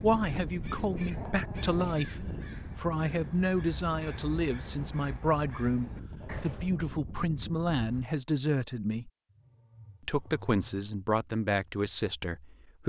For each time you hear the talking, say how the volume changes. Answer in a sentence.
The talking can be heard from 0.0 to 9.1 s, at a steady volume; and briefly from 10.1 to 12.8 s.